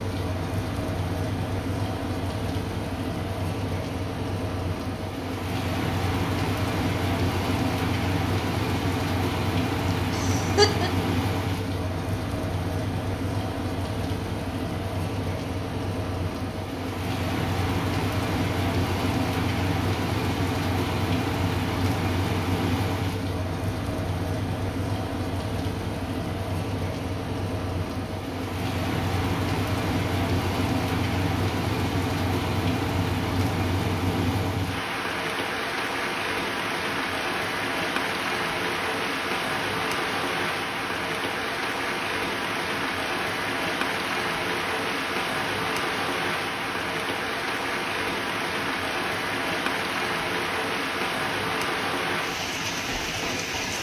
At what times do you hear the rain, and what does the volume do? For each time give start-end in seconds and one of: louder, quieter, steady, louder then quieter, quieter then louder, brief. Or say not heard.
0.0-53.7 steady.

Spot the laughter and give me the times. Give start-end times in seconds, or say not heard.
9.9-10.9.